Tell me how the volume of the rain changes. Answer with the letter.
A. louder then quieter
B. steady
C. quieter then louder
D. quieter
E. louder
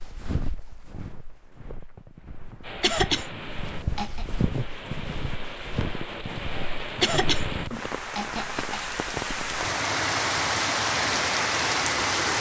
E.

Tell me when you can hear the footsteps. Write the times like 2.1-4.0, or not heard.
0.0-7.8.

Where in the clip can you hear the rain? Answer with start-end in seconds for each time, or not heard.
2.6-12.3.